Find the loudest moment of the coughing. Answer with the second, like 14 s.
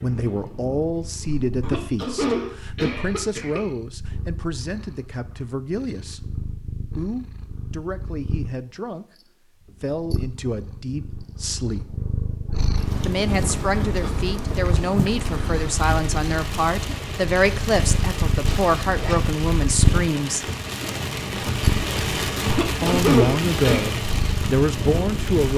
23 s.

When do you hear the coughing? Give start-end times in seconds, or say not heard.
1.6-3.6, 22.4-23.9.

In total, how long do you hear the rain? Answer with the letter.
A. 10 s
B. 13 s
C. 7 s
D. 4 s
B.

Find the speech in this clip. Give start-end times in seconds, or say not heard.
0.0-9.1, 9.8-11.9, 13.1-20.4, 22.8-25.5.